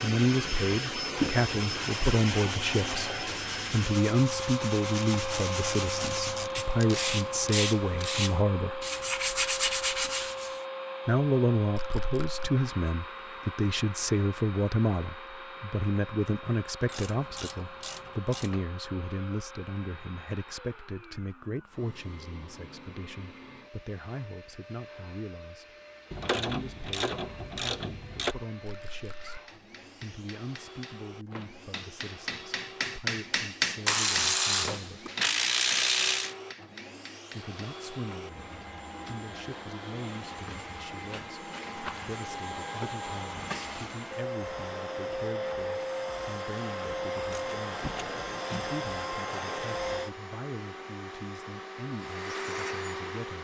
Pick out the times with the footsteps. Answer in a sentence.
You can't hear the footsteps here.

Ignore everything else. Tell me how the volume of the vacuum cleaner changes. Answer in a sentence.
The volume of the vacuum cleaner goes down, then up.